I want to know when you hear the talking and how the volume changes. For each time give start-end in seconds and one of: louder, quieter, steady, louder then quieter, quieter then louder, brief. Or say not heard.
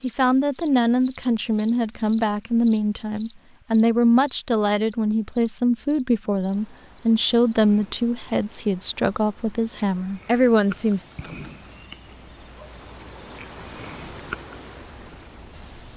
0.0-11.1 steady.